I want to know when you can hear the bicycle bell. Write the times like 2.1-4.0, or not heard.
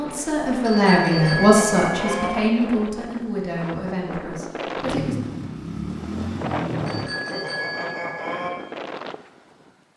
0.6-2.3, 6.8-8.5.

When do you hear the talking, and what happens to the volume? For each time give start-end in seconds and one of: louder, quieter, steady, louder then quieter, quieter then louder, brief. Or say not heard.
0.0-5.2 quieter.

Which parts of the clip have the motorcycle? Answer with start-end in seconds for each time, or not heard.
4.8-7.1.